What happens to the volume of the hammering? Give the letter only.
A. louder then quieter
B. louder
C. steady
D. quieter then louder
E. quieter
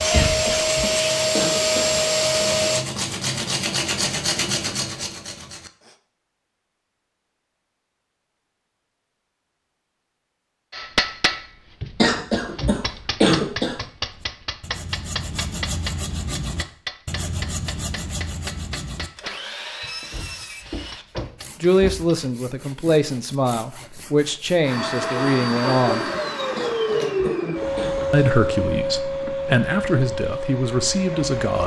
E.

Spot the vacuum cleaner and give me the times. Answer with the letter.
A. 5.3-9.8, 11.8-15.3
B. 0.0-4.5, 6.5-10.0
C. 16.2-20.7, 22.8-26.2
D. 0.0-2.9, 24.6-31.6
D.